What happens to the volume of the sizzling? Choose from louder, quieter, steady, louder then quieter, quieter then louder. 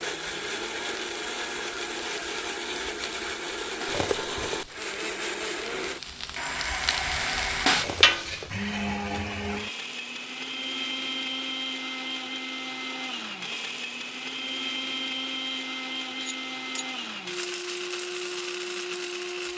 louder.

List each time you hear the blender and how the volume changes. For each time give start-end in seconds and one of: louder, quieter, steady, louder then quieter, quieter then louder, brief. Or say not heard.
0.0-19.5 steady.